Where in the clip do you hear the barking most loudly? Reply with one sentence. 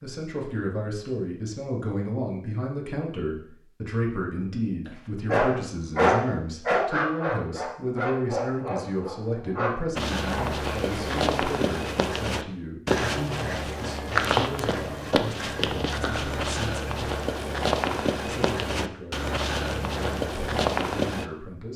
The loudest moment of the barking is at 6 seconds.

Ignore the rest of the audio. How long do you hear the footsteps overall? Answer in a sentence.
The footsteps can be heard for 11 seconds in total.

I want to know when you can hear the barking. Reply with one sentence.
The barking can be heard from 4.8 to 11.2 s.